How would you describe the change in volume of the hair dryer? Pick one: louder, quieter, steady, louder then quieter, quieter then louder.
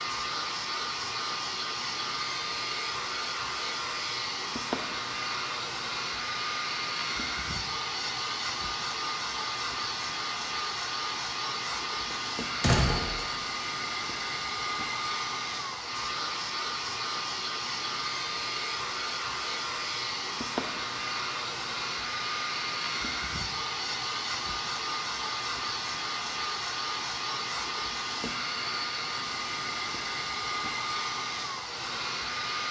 steady.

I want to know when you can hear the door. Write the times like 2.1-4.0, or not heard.
12.1-13.2.